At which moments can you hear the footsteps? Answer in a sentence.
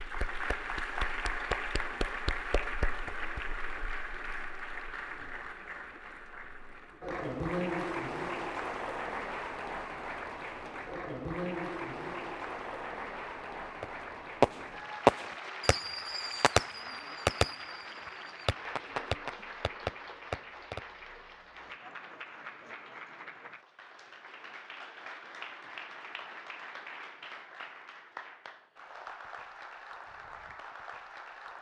You can't hear the footsteps here.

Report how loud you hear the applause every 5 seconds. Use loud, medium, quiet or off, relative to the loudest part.
loud, loud, loud, medium, medium, medium, medium.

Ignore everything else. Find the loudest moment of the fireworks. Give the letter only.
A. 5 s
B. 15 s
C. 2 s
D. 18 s
B.